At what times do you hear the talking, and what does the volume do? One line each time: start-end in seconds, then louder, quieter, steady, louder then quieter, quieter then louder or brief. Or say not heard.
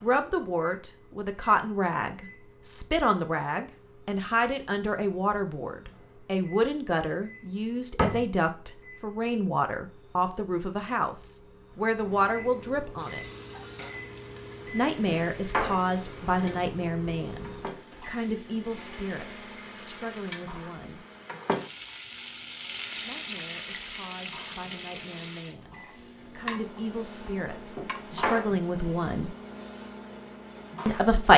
0.0-13.2 steady
14.7-21.1 quieter
23.0-29.4 louder
30.9-31.3 brief.